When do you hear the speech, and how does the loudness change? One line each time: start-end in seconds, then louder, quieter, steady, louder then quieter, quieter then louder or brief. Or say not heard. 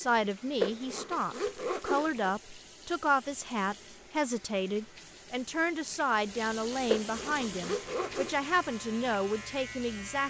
0.0-10.2 steady.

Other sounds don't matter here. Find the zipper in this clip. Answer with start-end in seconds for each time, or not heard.
0.6-2.2, 6.8-8.3.